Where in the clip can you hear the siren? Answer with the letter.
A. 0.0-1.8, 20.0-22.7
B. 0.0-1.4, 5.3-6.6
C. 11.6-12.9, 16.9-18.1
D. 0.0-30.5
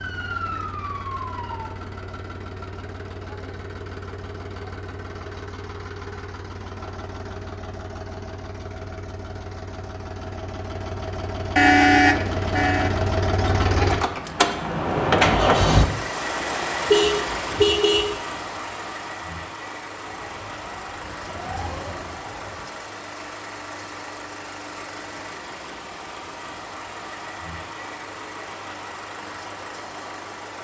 A.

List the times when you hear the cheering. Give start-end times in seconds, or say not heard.
not heard.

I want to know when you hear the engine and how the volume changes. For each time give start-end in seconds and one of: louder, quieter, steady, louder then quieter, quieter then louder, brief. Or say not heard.
0.0-30.5 louder then quieter.